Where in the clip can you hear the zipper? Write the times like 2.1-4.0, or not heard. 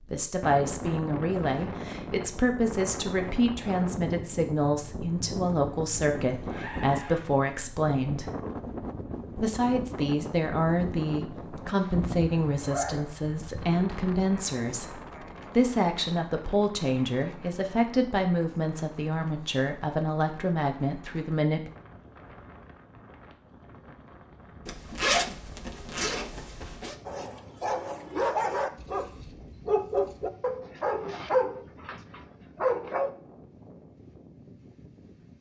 6.3-7.3, 12.4-13.5, 24.6-26.9.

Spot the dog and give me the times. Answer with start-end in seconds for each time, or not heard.
27.1-33.1.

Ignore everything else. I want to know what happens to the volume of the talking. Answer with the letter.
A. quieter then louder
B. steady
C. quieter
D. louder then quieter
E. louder
B.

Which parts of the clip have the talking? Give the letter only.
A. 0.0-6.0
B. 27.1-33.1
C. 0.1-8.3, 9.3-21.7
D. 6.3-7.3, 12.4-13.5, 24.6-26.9
C.